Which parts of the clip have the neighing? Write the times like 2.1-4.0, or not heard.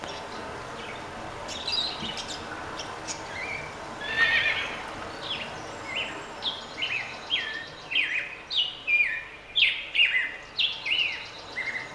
4.0-5.1.